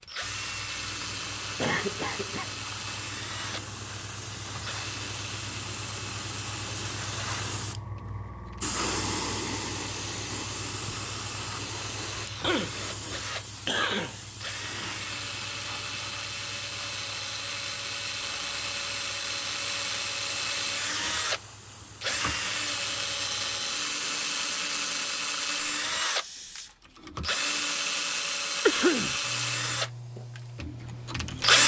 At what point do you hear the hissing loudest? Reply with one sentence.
The volume of the hissing peaks at 9 seconds.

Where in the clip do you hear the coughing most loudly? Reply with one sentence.
The volume of the coughing peaks at 29 seconds.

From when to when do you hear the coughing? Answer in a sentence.
You can hear the coughing from 1.6 to 2.5 s, from 12.4 to 14.3 s and from 28.6 to 29.1 s.